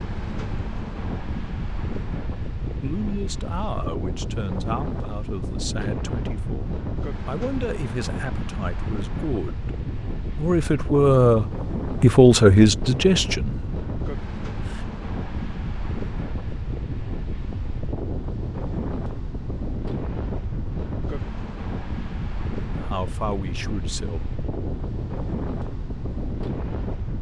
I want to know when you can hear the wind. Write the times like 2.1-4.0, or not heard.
0.0-27.1.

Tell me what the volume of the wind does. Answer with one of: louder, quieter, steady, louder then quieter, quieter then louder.
steady.